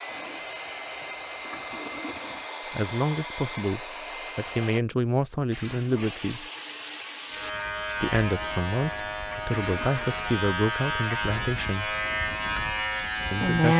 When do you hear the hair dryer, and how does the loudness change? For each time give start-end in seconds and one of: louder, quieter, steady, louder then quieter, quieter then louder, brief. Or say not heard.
0.0-4.8 steady.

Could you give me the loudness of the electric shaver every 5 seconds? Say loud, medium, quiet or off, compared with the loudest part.
off, medium, loud.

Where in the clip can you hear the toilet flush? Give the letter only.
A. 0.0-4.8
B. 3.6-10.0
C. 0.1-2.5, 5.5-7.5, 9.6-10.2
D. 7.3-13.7
C.